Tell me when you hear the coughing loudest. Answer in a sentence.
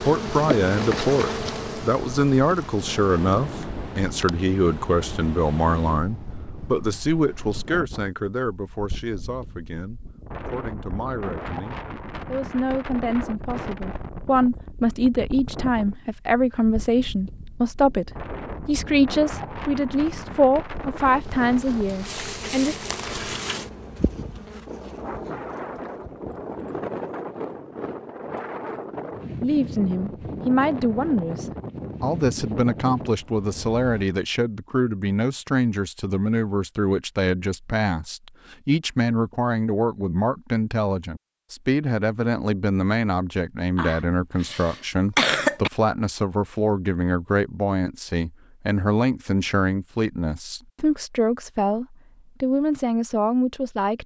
The volume of the coughing peaks at 45 seconds.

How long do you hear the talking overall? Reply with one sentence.
The talking can be heard for 47 seconds in total.